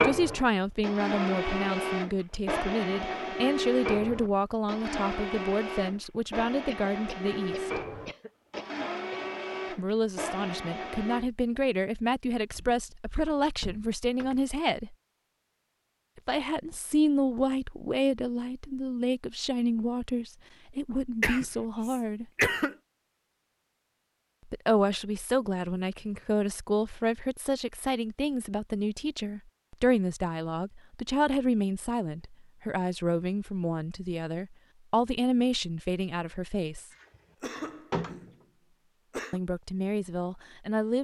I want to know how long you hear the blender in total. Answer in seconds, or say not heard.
11 s.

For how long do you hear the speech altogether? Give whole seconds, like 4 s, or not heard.
33 s.